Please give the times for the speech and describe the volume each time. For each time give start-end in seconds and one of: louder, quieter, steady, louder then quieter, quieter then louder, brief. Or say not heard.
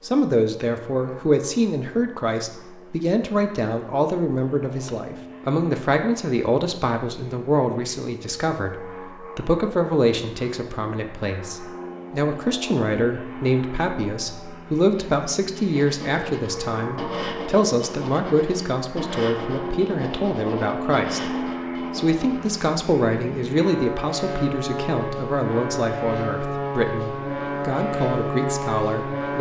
0.0-29.3 steady.